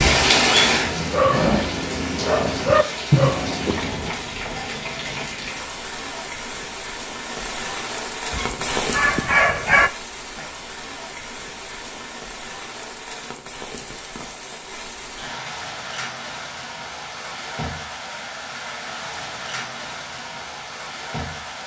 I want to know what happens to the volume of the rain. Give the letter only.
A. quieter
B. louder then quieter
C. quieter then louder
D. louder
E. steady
A.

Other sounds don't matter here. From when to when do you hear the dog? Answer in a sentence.
The dog can be heard from 0.0 to 4.1 s and from 8.3 to 9.9 s.